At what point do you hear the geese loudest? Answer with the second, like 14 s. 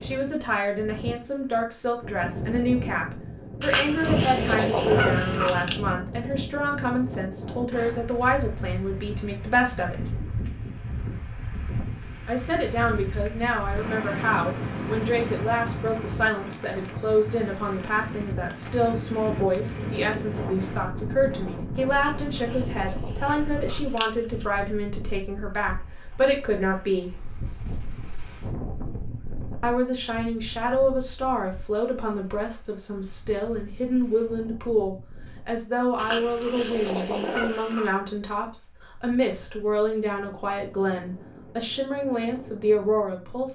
5 s.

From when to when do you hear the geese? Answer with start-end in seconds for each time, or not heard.
3.6-5.8, 22.0-24.4, 36.0-37.9.